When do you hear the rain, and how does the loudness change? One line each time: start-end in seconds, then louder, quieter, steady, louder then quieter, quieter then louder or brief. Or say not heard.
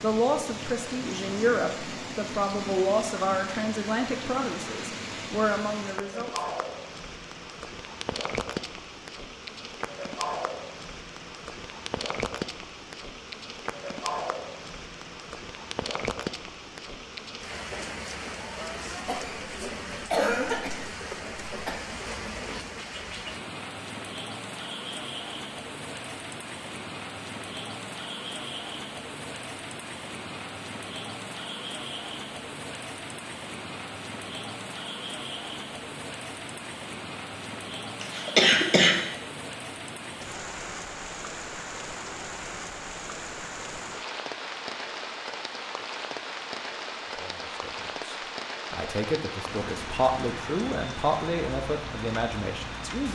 0.0-53.1 steady.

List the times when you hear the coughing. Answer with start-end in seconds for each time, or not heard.
19.1-21.8, 38.0-39.0.